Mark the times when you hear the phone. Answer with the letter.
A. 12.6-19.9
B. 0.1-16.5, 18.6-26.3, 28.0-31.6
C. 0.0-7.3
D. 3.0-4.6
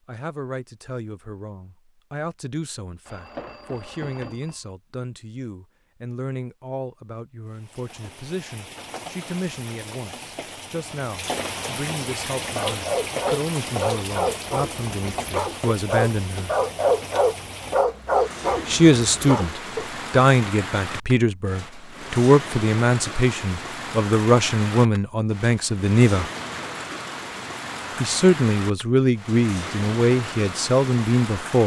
D.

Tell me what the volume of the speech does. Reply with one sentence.
The loudness of the speech goes up.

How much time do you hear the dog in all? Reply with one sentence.
You can hear the dog for 7 seconds altogether.